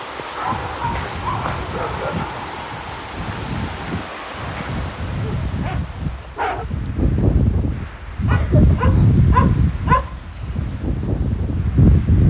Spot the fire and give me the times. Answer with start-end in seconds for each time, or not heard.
not heard.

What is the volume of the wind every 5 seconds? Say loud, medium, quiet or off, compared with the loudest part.
quiet, loud, loud.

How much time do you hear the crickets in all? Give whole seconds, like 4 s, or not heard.
12 s.